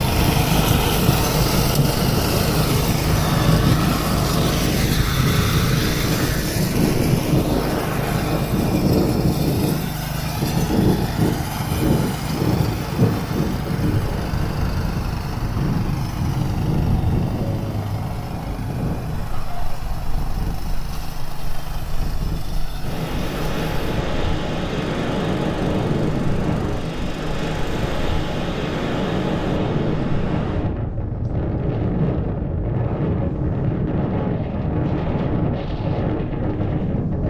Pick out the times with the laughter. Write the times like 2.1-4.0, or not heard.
19.1-19.8.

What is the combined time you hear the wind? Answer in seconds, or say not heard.
37 s.